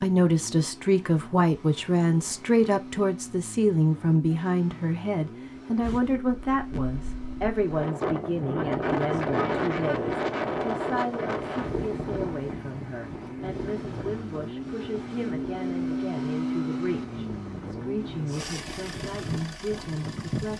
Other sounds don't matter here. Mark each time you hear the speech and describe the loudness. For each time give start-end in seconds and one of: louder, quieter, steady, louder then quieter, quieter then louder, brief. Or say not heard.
0.0-20.5 quieter.